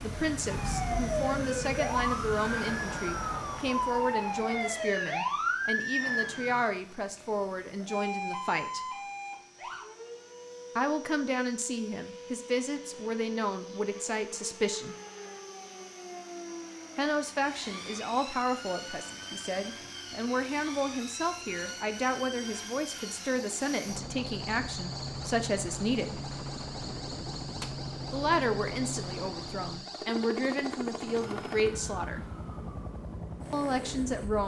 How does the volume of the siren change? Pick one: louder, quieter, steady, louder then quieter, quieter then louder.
quieter.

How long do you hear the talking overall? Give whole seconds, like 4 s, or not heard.
27 s.